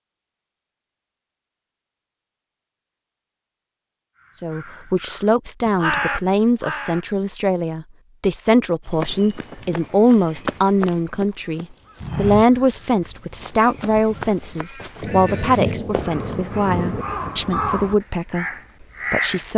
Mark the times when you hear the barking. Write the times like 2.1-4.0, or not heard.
not heard.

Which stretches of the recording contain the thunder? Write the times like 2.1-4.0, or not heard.
15.0-17.1.